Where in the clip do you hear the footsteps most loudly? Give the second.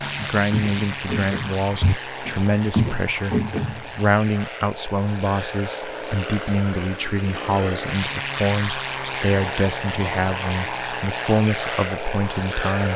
3 s.